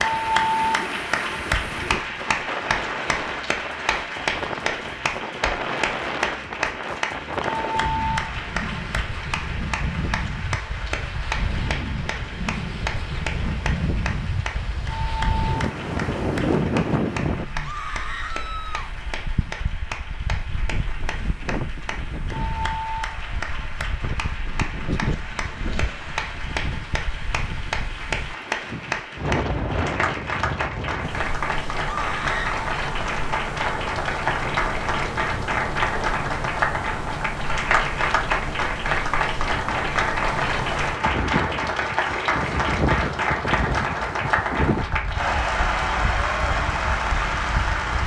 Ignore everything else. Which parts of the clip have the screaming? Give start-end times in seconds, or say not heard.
17.6-18.9, 31.9-32.6.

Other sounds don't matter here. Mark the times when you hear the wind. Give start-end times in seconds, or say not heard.
0.0-48.0.